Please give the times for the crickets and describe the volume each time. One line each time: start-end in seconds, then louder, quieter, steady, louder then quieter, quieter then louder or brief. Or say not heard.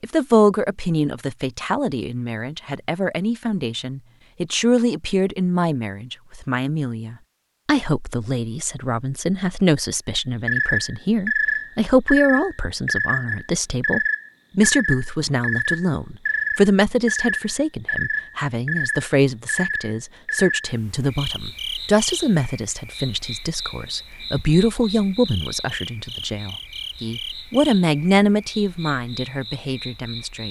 10.4-30.4 quieter.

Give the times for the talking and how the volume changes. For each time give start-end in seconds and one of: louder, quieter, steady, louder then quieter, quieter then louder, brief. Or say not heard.
0.0-30.4 steady.